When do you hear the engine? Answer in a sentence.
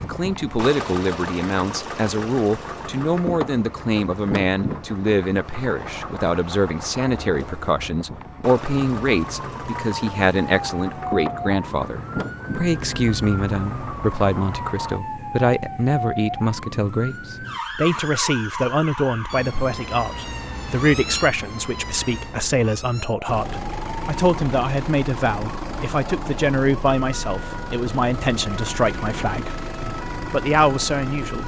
The engine can be heard from 0.0 to 15.0 s and from 23.2 to 31.4 s.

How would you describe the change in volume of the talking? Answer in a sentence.
The volume of the talking stays about the same.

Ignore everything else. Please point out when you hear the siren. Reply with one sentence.
You can hear the siren from 8.5 to 31.4 s.